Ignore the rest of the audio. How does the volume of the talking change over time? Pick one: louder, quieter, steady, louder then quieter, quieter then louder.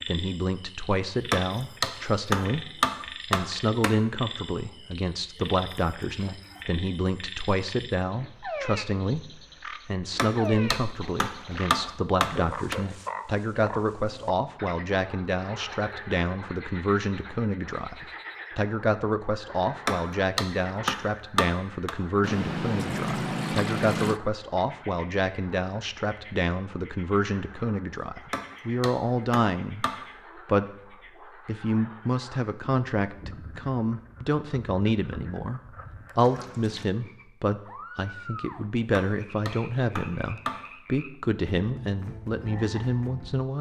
steady.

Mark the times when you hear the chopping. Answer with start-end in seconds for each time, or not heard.
1.3-4.0, 10.2-12.8, 19.9-21.9, 28.3-29.9, 39.0-40.5.